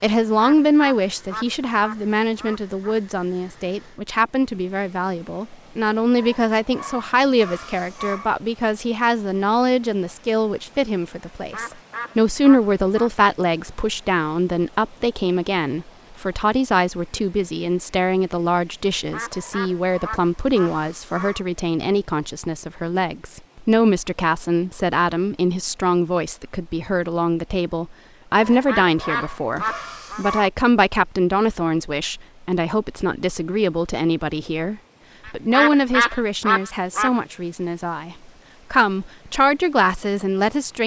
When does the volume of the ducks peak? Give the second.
36 s.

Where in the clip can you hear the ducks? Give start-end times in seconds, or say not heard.
0.3-3.0, 11.5-13.1, 19.1-21.3, 28.6-30.2, 35.2-37.1.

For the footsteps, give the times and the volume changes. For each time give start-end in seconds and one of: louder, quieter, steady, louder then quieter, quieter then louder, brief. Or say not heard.
not heard.